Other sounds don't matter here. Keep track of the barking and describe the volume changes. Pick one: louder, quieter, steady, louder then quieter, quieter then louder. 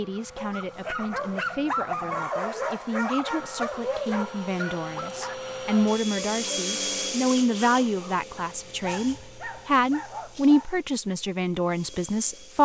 quieter.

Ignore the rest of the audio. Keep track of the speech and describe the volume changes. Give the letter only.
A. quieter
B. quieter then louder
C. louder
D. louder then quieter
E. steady
C.